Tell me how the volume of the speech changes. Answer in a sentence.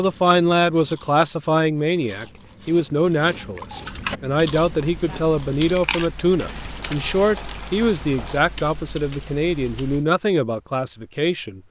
The loudness of the speech stays about the same.